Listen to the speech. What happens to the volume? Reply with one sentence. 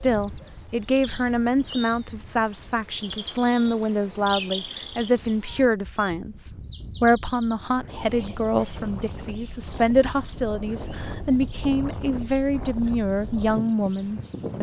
The volume of the speech stays about the same.